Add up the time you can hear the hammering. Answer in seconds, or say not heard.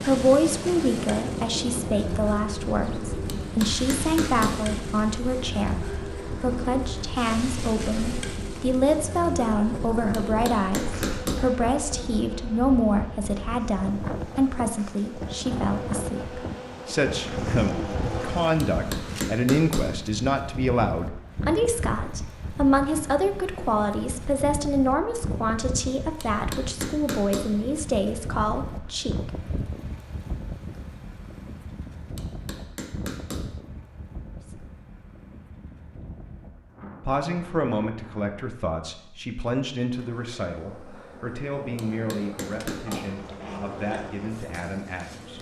9 s.